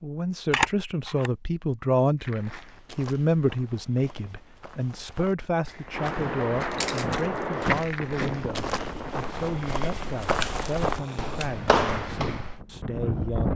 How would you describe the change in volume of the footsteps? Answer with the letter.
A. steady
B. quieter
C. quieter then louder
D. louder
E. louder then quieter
D.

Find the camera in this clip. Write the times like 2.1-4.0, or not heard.
0.5-1.3, 6.7-7.2, 10.3-11.5.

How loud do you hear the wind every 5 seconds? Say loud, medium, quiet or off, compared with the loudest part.
off, loud, loud.